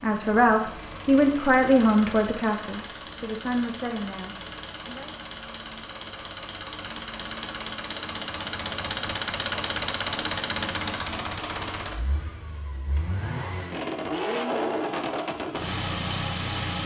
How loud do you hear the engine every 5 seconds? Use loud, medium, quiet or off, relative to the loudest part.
medium, loud, loud, loud.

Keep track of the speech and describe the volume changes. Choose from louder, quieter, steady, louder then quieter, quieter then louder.
quieter.